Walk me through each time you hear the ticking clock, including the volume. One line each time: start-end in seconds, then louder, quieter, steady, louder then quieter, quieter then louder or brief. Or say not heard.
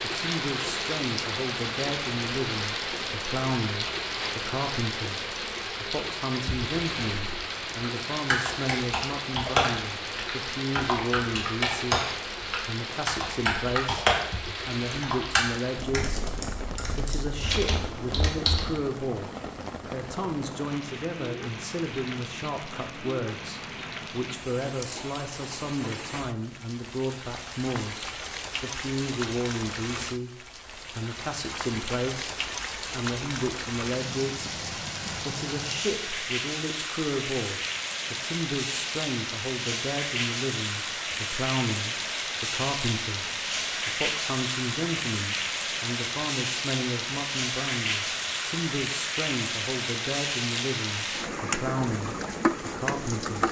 not heard.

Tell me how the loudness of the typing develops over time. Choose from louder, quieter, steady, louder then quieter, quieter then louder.
quieter then louder.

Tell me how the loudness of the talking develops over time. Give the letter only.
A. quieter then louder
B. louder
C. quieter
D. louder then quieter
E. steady
E.